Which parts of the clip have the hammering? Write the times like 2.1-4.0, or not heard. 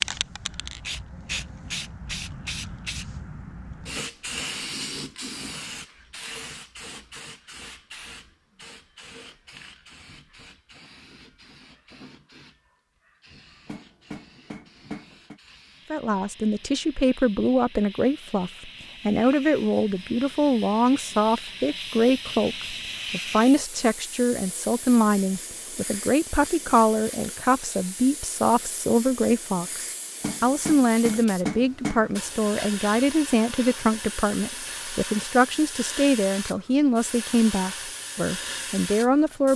13.7-15.4, 30.2-32.0.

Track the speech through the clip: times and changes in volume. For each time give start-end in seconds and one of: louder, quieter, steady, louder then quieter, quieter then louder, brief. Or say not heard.
15.9-39.5 steady.